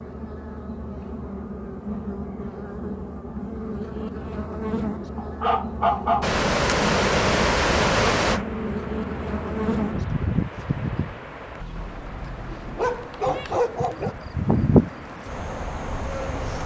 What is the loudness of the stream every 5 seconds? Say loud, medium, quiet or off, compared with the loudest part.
off, loud, quiet, quiet.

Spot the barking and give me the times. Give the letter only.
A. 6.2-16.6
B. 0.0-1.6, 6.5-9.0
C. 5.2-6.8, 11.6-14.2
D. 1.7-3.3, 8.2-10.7
C.